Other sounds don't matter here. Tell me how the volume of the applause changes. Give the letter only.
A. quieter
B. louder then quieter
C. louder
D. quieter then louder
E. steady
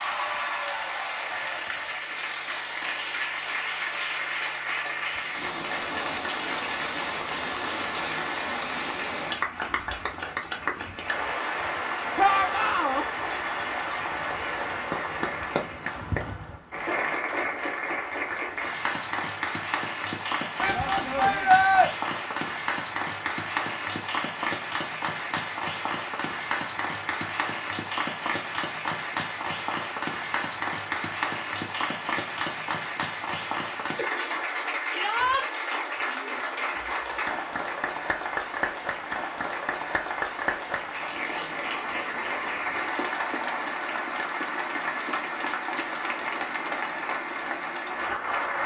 E.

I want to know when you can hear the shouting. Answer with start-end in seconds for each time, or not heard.
12.2-13.1, 20.6-21.9, 34.9-35.5.